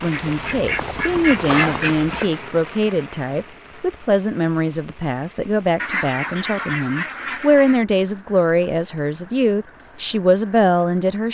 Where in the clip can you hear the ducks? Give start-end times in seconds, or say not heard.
0.1-2.3, 5.8-7.8.